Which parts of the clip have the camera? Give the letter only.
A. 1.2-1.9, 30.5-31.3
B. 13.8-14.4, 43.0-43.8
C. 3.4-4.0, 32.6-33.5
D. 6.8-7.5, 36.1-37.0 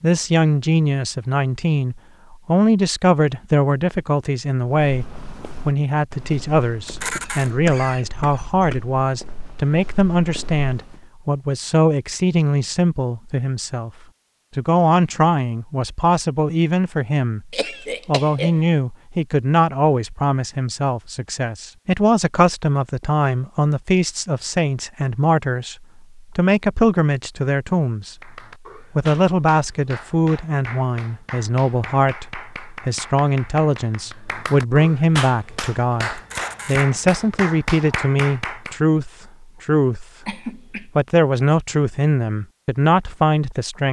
D.